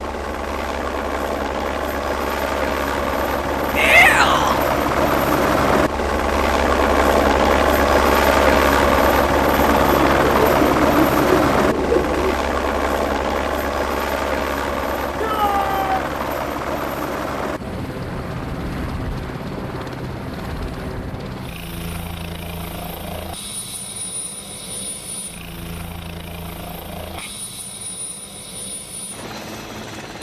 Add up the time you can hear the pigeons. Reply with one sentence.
The pigeons can be heard for 3 seconds in total.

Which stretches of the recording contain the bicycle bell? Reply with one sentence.
You can't hear the bicycle bell here.